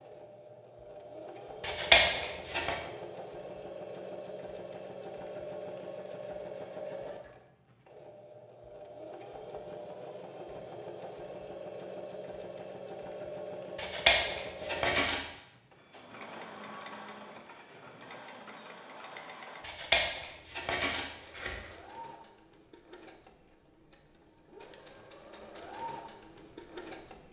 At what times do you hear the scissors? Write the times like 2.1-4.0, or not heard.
1.6-2.8, 13.8-15.2, 19.6-21.6.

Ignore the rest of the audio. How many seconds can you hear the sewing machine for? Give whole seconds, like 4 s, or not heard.
27 s.